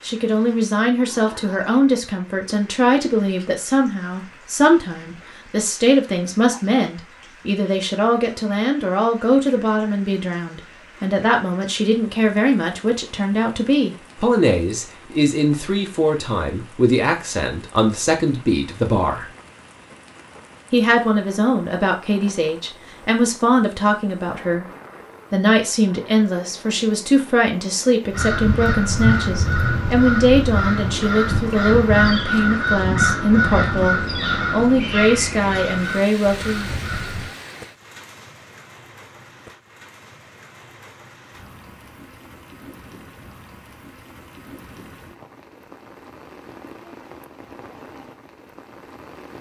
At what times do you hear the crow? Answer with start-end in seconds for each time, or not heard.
28.1-37.3.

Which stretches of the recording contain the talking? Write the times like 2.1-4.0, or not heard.
0.0-19.3, 20.7-24.6, 25.3-36.8.